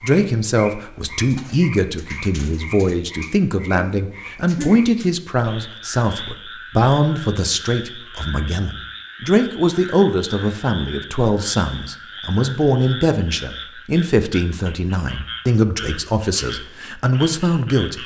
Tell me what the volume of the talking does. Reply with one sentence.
The loudness of the talking stays about the same.